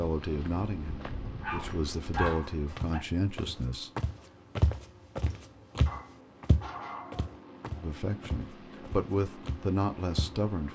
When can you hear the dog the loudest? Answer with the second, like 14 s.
2 s.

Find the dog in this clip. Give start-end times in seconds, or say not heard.
1.4-3.0, 5.8-7.3.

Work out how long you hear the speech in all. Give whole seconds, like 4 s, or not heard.
7 s.